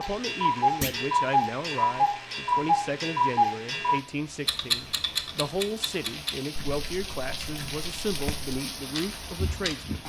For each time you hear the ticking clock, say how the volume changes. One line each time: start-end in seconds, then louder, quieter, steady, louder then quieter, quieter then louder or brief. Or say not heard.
0.0-10.0 quieter.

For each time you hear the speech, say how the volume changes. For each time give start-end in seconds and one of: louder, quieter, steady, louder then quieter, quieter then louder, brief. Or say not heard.
0.0-10.0 steady.